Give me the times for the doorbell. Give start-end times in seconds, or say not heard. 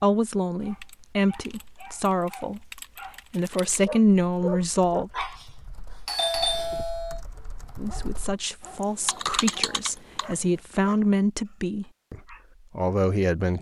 6.0-7.2.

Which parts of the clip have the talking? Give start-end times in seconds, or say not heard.
0.0-5.1, 7.8-13.5.